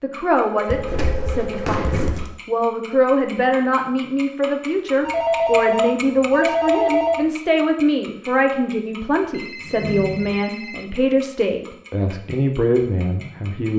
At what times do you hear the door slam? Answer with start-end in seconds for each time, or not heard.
0.7-2.3, 9.6-10.4.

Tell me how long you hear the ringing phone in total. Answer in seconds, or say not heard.
5 s.